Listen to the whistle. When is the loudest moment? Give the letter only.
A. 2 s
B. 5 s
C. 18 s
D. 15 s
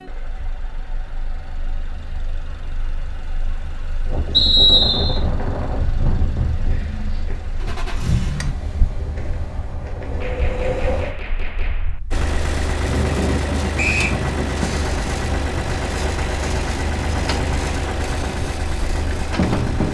B.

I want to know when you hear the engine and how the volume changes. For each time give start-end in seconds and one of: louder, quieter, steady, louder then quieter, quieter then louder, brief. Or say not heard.
0.0-8.6 louder
12.1-19.8 steady.